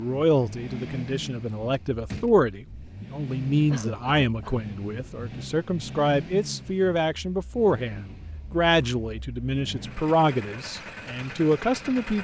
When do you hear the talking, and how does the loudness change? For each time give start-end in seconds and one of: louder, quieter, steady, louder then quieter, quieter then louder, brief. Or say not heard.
0.0-12.1 steady.